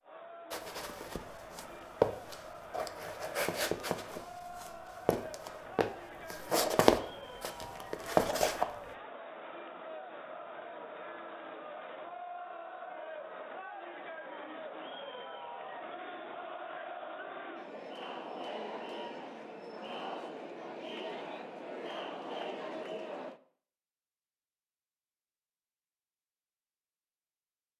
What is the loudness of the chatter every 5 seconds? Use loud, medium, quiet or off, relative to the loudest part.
medium, medium, loud, loud, loud, off.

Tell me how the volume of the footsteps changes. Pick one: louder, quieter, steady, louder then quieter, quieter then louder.
quieter then louder.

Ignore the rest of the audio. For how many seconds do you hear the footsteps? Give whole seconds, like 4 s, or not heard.
8 s.